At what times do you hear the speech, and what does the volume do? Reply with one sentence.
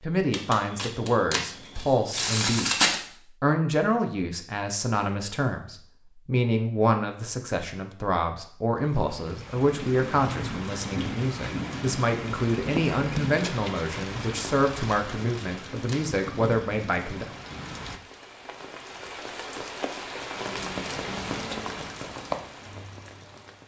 The speech can be heard from 0.0 to 17.2 s, at a steady volume.